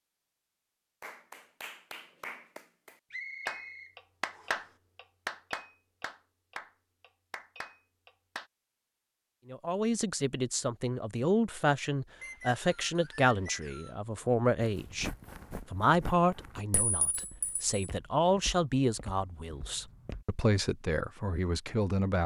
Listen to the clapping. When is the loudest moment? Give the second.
4 s.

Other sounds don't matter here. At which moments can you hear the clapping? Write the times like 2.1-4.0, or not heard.
1.0-8.5.